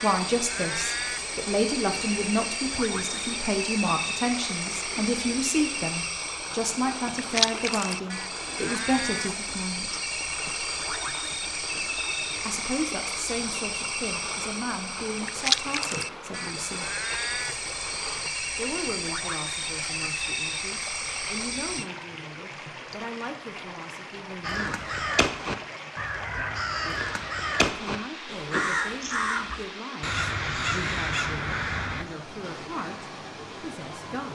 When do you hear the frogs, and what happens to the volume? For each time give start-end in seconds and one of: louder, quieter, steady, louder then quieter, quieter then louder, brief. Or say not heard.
0.0-21.9 steady.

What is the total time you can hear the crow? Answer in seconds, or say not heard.
8 s.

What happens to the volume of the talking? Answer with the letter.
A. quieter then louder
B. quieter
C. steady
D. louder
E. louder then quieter
B.